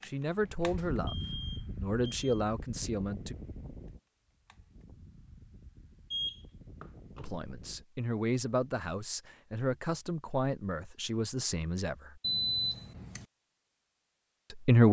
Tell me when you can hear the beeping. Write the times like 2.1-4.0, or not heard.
0.8-2.5, 6.1-7.3, 12.2-13.2.